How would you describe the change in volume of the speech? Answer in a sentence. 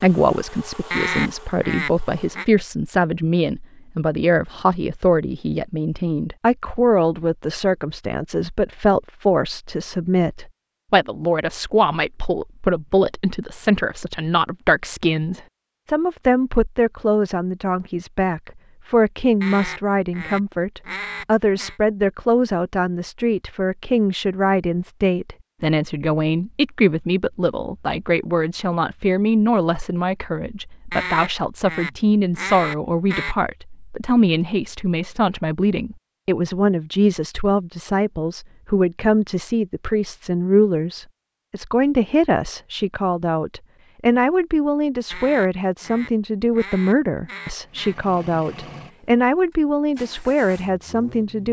The volume of the speech stays about the same.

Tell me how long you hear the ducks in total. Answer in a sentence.
You can hear the ducks for 9 seconds altogether.